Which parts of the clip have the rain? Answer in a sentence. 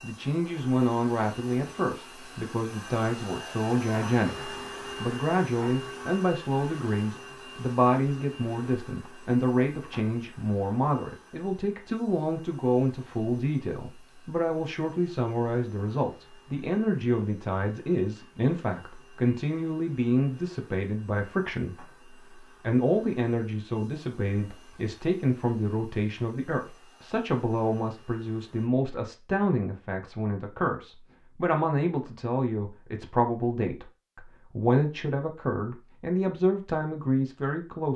The rain can't be heard in this clip.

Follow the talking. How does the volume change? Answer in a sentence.
The loudness of the talking stays about the same.